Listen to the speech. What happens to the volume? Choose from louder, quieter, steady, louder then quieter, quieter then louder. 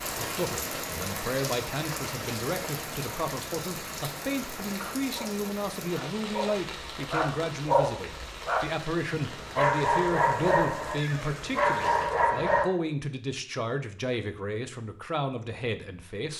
steady.